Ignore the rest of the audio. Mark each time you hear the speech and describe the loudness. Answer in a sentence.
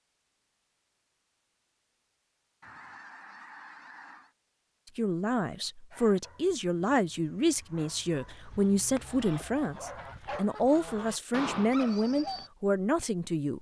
You can hear the speech from 5.0 to 13.5 s, at a steady volume.